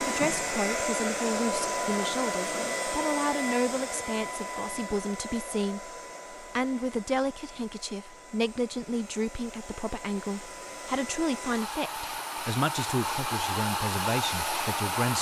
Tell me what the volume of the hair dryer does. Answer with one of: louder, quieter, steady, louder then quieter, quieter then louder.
quieter then louder.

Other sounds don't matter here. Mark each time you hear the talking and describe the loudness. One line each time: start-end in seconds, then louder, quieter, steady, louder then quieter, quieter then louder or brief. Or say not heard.
0.0-15.1 steady.